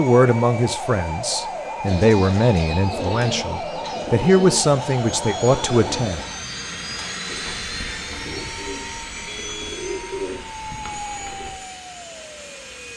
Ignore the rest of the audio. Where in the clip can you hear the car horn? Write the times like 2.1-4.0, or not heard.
9.2-9.8.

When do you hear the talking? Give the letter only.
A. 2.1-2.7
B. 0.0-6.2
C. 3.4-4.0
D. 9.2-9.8
B.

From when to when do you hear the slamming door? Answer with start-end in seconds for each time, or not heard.
not heard.